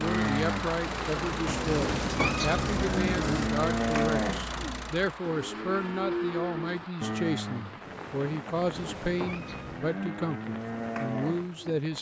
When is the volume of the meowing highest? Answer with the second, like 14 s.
2 s.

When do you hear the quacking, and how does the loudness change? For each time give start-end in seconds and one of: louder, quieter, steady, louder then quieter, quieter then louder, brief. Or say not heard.
not heard.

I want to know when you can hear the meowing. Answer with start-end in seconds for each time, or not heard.
1.4-3.5, 8.6-9.8.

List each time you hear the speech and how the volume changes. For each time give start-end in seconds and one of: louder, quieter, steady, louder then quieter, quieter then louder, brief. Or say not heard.
0.0-11.9 steady.